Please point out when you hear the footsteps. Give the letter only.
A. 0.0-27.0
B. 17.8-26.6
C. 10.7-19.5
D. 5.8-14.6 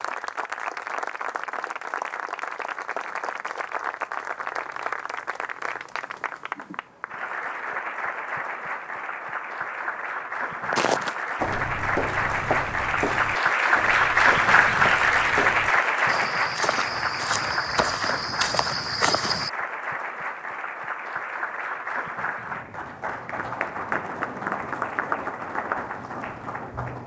C.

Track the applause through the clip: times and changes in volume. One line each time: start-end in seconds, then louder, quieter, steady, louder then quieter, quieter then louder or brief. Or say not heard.
0.0-27.0 louder then quieter.